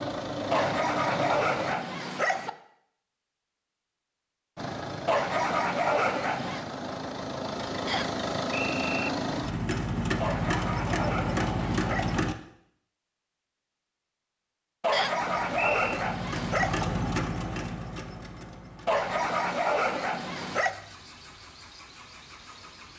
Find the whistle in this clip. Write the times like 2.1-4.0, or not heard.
7.8-9.1, 14.9-16.0.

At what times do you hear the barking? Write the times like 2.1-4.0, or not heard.
0.5-2.5, 5.0-6.7, 10.2-12.2, 14.8-16.9, 18.9-20.8.